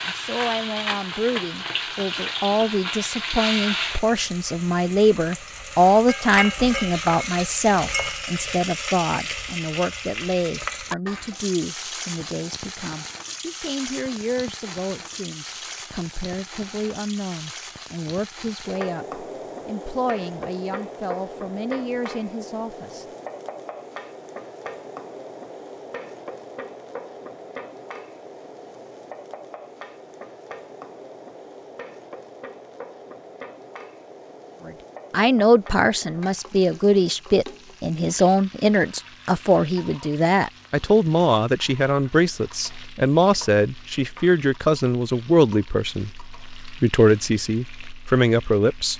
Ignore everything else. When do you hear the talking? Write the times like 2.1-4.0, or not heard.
0.1-23.1, 34.6-48.9.